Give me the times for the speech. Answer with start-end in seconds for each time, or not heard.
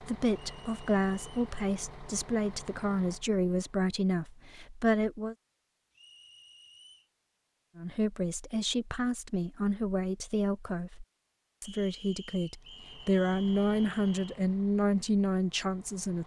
0.0-5.3, 7.8-16.2.